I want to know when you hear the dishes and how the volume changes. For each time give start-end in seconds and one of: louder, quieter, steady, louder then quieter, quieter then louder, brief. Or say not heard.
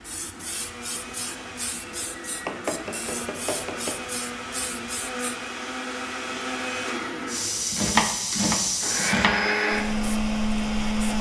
not heard.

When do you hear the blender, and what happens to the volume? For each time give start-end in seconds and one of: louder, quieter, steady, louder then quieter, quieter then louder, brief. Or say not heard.
0.0-11.1 louder.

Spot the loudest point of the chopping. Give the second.
8 s.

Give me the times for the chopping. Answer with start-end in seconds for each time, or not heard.
2.5-4.0, 7.7-9.4.